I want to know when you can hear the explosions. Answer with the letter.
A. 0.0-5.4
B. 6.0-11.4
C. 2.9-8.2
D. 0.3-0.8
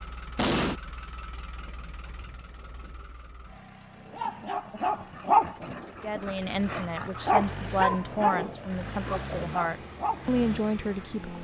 D.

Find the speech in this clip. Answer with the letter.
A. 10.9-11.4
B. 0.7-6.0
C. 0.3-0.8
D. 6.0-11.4
D.